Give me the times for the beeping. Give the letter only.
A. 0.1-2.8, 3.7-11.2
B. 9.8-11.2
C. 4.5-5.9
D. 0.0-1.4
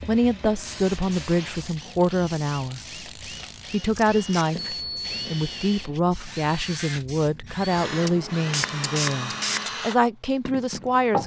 C.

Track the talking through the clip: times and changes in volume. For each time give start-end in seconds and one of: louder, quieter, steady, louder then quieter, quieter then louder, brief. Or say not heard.
0.1-2.8 brief
3.7-11.2 steady.